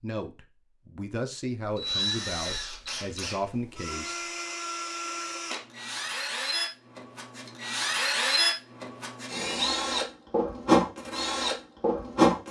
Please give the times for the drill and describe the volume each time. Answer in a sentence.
You can hear the drill from 1.6 to 12.4 s, getting louder.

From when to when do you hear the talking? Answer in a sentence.
The talking can be heard from 0.0 to 4.2 s.